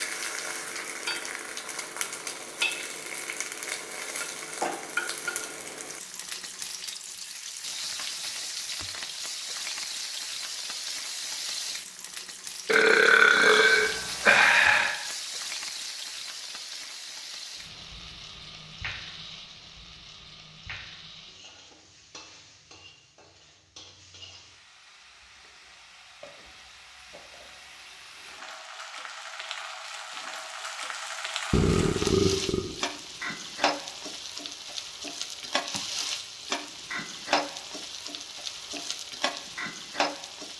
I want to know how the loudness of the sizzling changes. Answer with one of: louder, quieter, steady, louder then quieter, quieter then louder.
quieter then louder.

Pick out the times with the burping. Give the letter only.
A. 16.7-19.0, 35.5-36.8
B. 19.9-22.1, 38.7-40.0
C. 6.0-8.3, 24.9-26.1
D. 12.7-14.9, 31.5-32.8
D.